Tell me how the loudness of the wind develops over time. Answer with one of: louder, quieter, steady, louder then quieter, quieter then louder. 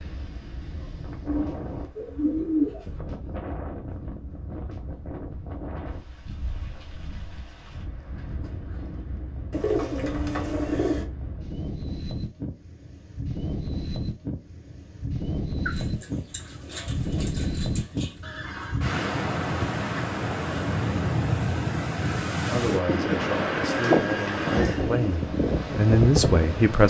louder.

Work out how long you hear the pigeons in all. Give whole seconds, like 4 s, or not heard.
7 s.